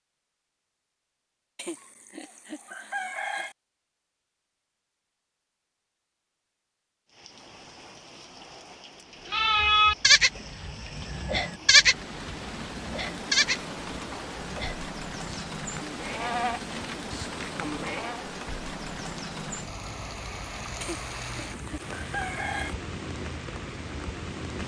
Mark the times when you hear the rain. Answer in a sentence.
The rain can be heard from 7.0 to 24.6 s.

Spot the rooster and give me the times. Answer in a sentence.
You can hear the rooster from 1.6 to 3.5 s and from 20.8 to 22.8 s.